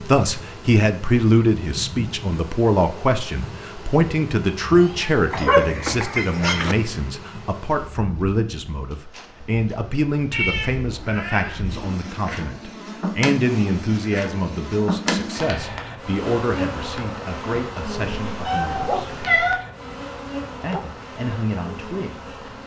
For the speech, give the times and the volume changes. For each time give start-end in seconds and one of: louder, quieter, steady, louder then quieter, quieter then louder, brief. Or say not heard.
0.0-19.1 quieter
20.6-22.1 brief.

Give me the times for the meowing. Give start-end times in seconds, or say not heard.
4.7-5.5, 10.3-11.7, 18.3-19.6.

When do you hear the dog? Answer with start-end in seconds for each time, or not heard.
5.3-6.8, 18.8-20.9.